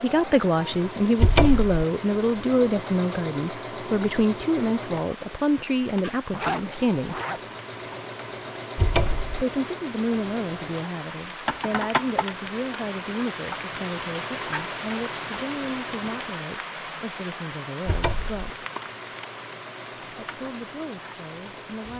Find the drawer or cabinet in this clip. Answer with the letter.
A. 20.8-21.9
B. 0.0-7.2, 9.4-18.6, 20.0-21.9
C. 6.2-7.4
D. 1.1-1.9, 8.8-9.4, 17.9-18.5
D.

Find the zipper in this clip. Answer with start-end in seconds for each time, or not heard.
6.2-7.4.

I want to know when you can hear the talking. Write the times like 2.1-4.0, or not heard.
0.0-7.2, 9.4-18.6, 20.0-21.9.